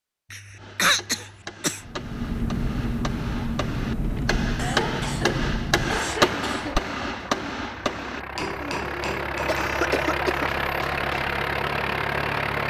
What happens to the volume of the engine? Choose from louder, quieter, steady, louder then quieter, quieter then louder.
quieter then louder.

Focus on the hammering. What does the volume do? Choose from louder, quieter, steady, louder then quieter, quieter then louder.
louder then quieter.